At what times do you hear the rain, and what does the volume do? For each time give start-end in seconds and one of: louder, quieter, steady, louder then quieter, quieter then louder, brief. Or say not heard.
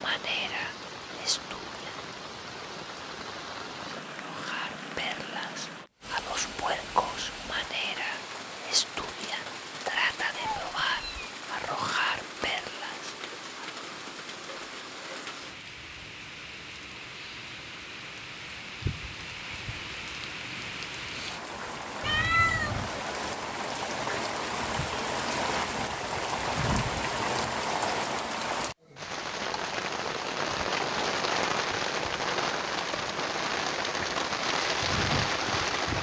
0.0-35.9 louder.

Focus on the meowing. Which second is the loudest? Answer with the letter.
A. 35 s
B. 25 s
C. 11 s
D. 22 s
D.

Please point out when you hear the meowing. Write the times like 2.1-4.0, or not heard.
10.3-11.3, 22.0-22.9.